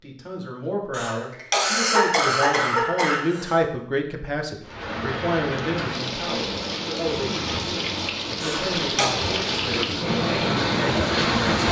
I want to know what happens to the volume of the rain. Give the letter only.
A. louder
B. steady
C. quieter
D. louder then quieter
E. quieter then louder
A.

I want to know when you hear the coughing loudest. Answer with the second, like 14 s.
2 s.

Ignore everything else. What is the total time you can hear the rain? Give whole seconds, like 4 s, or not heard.
7 s.